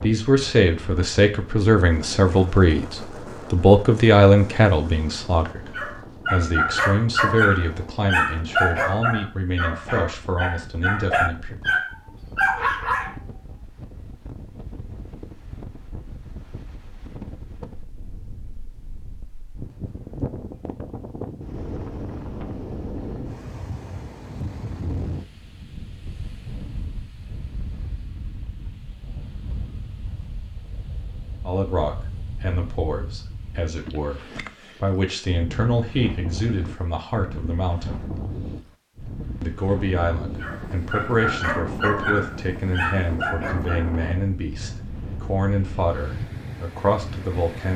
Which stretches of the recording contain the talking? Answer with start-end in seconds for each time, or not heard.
0.0-11.6, 31.4-38.0, 39.4-47.7.